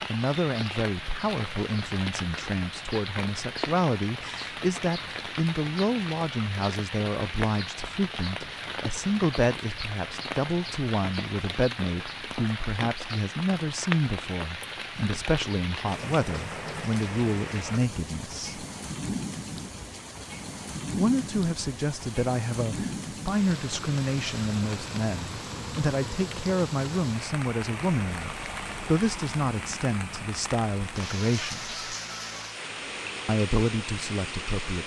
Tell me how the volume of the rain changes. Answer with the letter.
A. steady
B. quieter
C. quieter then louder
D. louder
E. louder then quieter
A.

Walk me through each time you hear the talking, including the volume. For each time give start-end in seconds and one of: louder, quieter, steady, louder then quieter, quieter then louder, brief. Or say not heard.
0.1-18.6 steady
20.9-31.8 steady
33.2-34.8 brief.